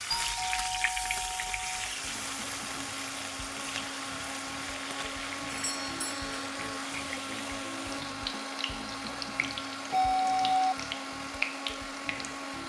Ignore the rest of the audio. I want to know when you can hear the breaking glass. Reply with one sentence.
You can't hear the breaking glass here.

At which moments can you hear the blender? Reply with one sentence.
The blender can be heard from 1.7 to 12.6 s.